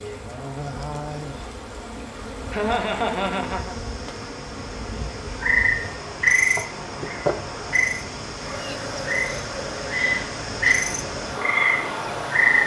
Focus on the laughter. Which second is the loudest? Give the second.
3 s.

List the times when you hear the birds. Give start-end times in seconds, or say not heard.
not heard.